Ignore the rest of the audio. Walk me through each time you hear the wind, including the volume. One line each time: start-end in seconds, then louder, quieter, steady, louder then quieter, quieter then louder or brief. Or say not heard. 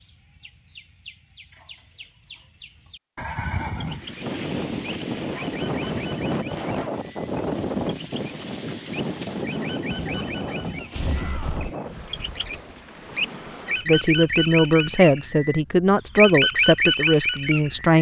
3.9-17.9 quieter.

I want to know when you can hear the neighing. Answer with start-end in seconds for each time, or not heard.
3.1-4.0, 9.8-11.7.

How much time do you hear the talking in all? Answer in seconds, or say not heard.
4 s.